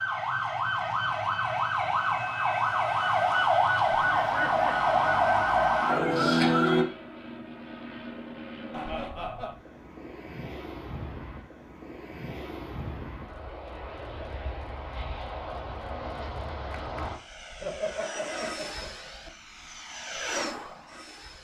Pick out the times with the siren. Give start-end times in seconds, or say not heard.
0.0-6.8.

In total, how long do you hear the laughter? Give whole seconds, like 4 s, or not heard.
3 s.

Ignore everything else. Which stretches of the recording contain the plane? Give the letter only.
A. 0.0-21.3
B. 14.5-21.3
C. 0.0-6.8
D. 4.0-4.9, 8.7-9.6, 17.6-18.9
A.